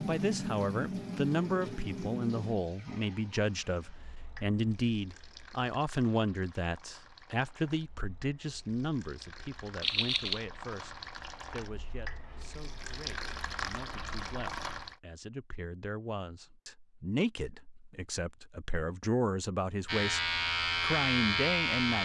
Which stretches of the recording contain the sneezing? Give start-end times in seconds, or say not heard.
9.8-10.4.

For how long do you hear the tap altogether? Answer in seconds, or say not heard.
15 s.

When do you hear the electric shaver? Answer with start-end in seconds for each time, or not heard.
19.9-22.0.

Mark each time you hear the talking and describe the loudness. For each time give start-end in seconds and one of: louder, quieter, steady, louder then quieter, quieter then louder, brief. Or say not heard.
0.1-22.0 quieter then louder.